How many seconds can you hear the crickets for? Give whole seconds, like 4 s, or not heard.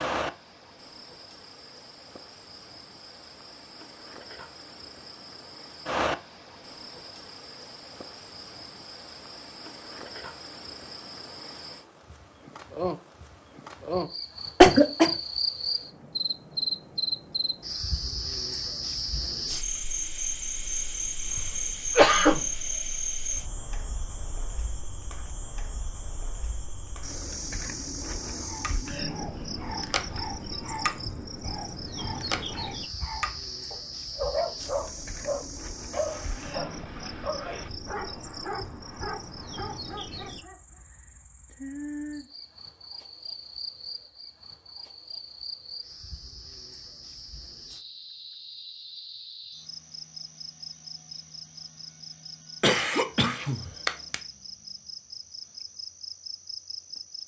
57 s.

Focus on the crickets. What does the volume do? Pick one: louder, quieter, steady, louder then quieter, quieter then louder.
louder then quieter.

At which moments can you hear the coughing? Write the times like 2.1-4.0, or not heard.
14.6-15.1, 21.2-22.7, 52.6-54.1.